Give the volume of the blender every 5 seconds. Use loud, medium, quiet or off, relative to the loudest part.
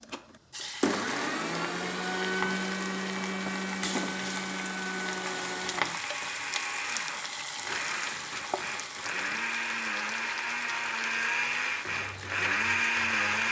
loud, medium, loud.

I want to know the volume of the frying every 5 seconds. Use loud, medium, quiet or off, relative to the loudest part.
loud, loud, medium.